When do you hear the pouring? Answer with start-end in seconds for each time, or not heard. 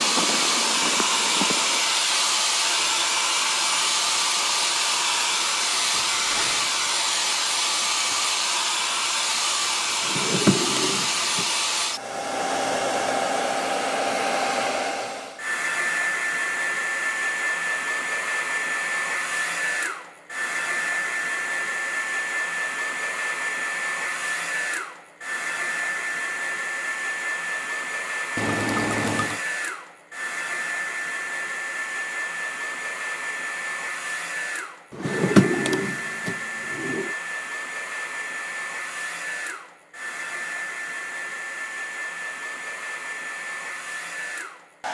5.9-6.8, 28.4-29.4.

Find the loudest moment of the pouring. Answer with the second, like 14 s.
29 s.